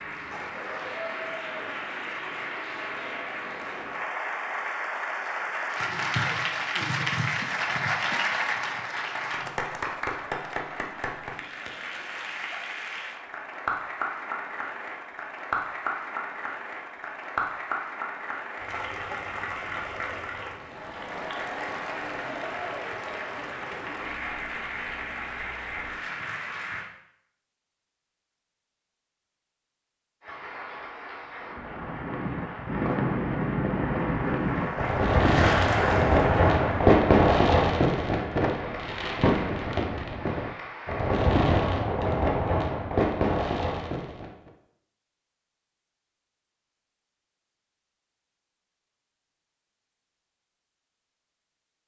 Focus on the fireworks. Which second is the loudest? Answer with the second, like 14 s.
37 s.